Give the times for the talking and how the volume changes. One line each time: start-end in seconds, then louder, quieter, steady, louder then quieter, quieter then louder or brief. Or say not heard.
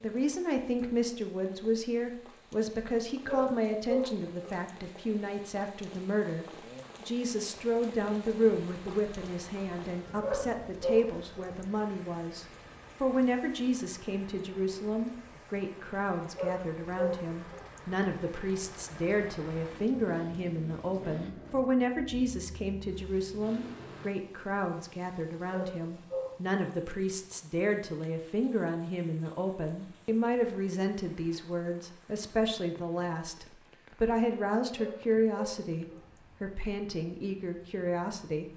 0.0-38.5 steady.